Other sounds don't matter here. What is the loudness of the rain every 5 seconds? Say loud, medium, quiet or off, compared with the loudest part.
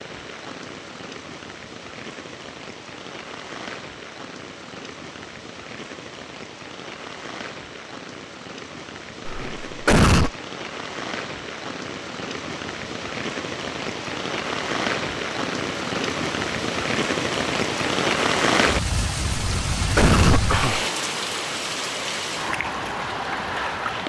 quiet, quiet, medium, loud, loud.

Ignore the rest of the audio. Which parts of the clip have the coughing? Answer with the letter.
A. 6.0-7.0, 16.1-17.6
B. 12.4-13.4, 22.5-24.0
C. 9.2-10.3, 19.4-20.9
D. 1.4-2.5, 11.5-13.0
C.